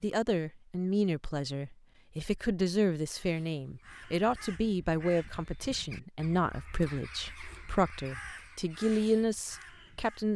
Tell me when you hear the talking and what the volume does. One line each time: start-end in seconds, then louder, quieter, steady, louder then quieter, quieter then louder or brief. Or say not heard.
0.0-10.3 steady.